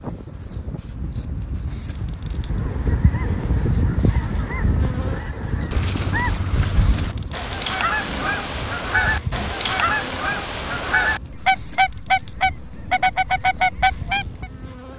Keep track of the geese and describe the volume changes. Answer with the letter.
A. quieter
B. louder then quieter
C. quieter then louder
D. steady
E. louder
E.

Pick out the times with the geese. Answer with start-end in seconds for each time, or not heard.
2.2-14.4.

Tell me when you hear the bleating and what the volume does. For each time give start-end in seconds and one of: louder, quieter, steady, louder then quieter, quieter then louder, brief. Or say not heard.
not heard.